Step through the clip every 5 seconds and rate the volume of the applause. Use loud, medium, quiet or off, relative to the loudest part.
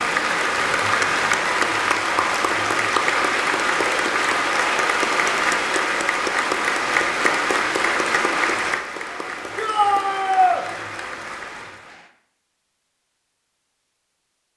loud, loud, quiet.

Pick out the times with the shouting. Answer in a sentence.
The shouting can be heard from 9.6 to 10.7 s.